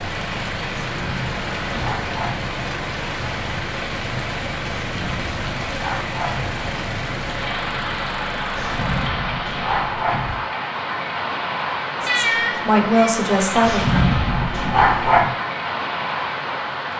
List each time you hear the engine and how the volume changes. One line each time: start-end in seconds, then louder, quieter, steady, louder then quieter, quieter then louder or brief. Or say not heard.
0.0-8.9 steady.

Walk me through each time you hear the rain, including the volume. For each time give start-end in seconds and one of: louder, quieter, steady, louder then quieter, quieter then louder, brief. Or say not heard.
0.0-16.9 steady.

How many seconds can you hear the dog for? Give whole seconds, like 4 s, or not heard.
7 s.